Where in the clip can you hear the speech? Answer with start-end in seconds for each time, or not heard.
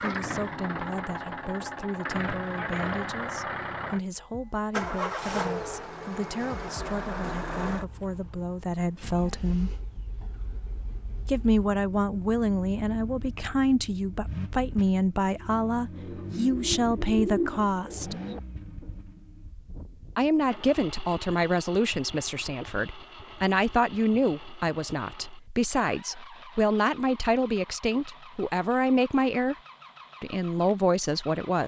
0.0-9.8, 11.2-18.1, 20.1-29.6, 30.2-31.6.